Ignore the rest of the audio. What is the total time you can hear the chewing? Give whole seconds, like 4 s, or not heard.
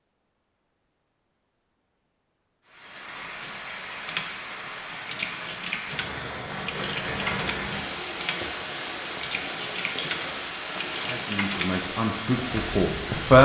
not heard.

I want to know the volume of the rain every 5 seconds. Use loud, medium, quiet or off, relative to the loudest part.
medium, loud, loud.